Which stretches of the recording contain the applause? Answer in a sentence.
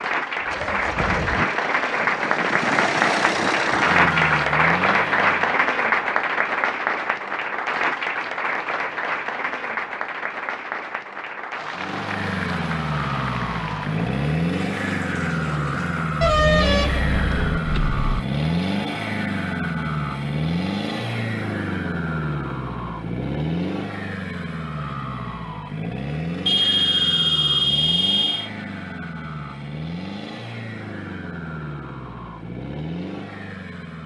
The applause can be heard from 0.0 to 16.2 s.